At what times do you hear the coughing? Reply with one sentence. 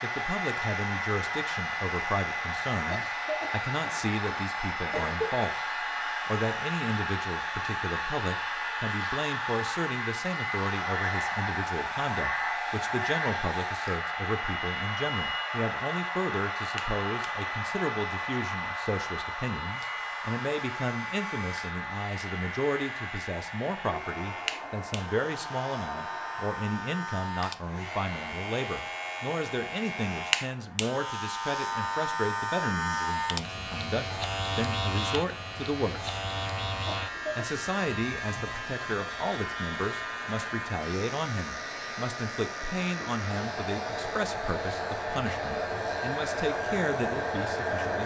You can hear the coughing from 2.9 to 5.5 s and from 36.9 to 37.5 s.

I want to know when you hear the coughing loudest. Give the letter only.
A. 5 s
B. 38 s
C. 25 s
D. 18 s
A.